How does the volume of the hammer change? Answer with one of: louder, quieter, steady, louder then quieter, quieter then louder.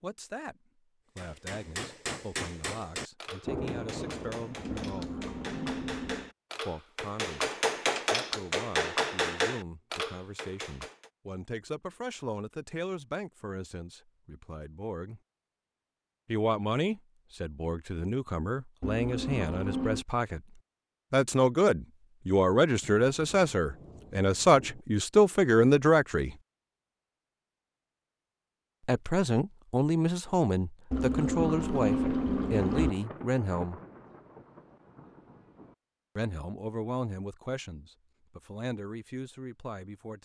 quieter then louder.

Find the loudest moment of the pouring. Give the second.
32 s.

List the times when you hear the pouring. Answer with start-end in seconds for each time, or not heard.
4.8-6.3, 18.8-20.1, 30.9-32.9.